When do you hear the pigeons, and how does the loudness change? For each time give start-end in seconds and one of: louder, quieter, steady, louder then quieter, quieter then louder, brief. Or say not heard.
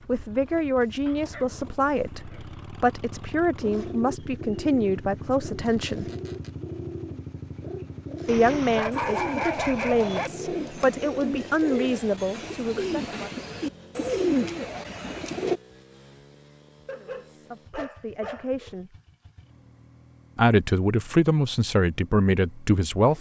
3.6-15.6 louder.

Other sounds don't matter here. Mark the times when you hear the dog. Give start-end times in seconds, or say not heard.
1.1-2.5, 8.2-10.3, 16.9-18.8.